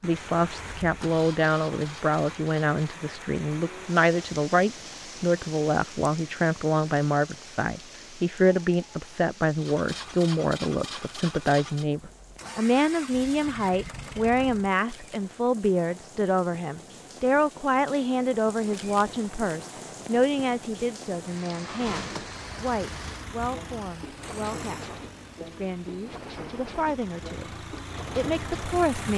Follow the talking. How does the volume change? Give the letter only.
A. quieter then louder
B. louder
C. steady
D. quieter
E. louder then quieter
D.